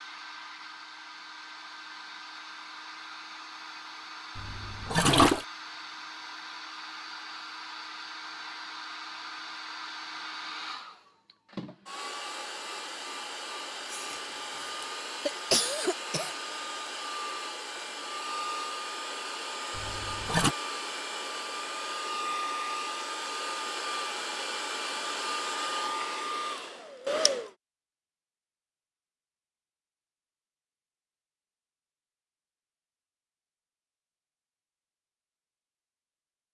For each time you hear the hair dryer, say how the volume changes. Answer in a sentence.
The hair dryer can be heard from 0.0 to 27.6 s, getting louder.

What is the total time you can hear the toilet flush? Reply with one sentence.
The toilet flush can be heard for 2 seconds in total.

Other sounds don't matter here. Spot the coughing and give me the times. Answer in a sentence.
The coughing can be heard from 13.9 to 16.4 s.